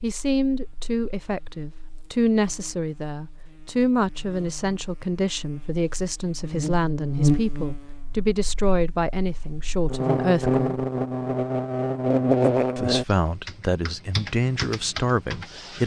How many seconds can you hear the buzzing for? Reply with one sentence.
You can hear the buzzing for 13 seconds altogether.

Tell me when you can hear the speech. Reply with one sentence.
You can hear the speech from 0.0 to 10.8 s and from 12.8 to 15.8 s.